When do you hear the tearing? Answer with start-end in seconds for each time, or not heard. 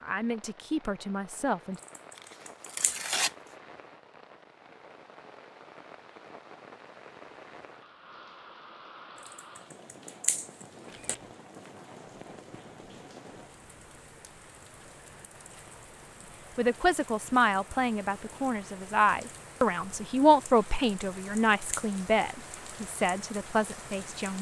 2.1-3.4.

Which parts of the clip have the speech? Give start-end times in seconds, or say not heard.
0.0-1.8, 16.6-24.3.